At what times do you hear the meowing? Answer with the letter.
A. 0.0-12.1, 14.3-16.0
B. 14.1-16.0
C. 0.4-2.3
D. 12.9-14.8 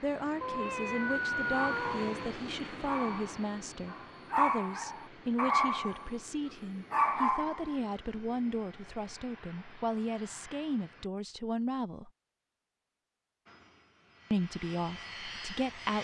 C.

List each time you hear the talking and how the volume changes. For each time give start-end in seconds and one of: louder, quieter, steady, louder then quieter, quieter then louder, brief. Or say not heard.
0.0-12.1 steady
14.3-16.0 brief.